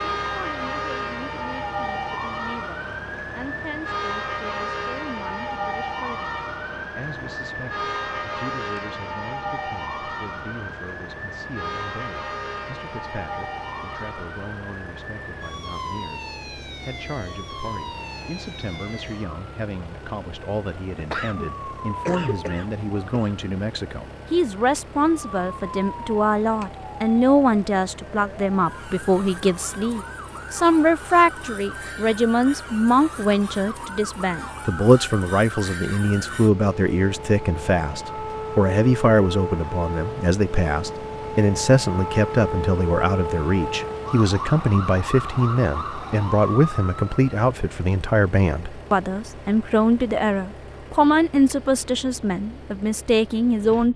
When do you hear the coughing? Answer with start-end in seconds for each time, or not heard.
20.9-23.4.